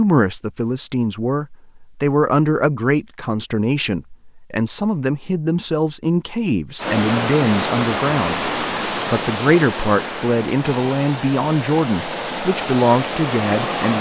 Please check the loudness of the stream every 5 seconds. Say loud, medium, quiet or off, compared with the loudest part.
off, loud, loud.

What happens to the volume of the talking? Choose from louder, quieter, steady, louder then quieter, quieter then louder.
steady.